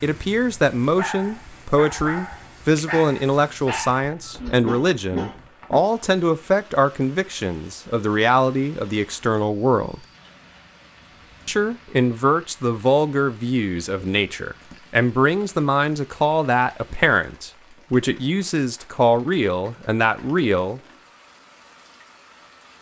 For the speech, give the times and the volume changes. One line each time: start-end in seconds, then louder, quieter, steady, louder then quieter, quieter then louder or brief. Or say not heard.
0.0-10.1 steady
11.4-20.8 steady.